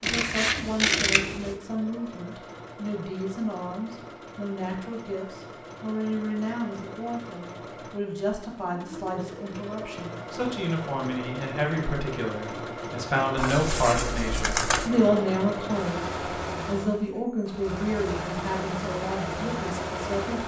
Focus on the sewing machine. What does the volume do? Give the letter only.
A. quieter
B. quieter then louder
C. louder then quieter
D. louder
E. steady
D.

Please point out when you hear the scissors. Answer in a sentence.
You can hear the scissors from 0.0 to 1.6 s and from 13.3 to 14.9 s.